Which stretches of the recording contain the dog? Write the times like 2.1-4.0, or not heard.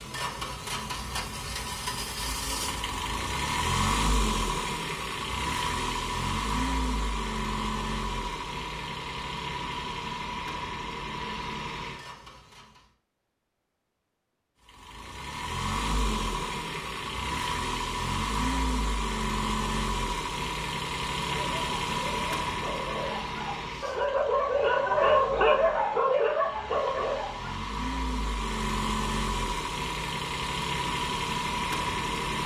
21.2-27.6.